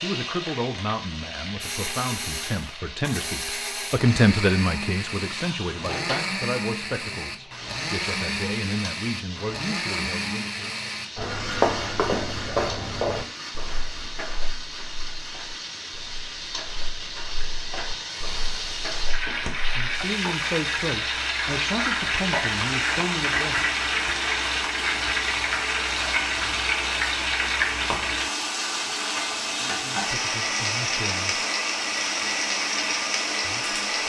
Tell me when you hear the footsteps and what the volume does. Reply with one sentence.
The footsteps can be heard from 11.2 to 19.9 s, getting quieter then louder.